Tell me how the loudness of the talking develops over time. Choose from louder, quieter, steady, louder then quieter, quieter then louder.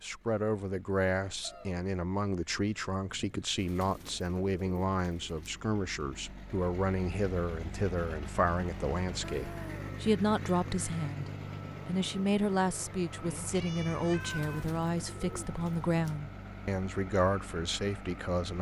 steady.